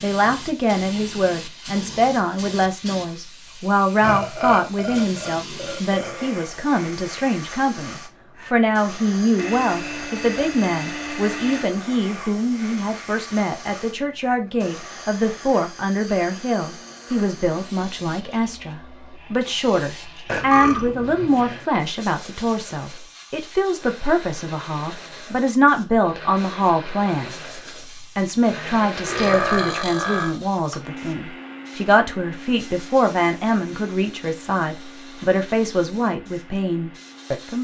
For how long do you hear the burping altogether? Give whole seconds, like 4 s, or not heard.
5 s.